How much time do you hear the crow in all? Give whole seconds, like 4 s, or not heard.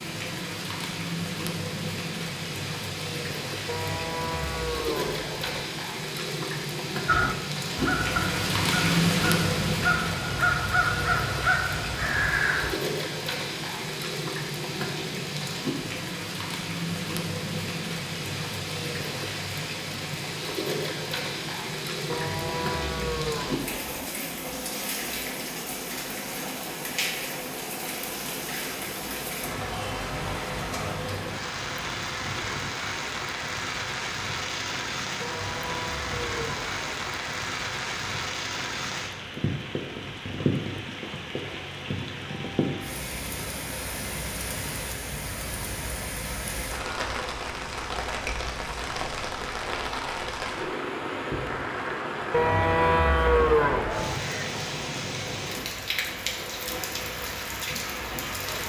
6 s.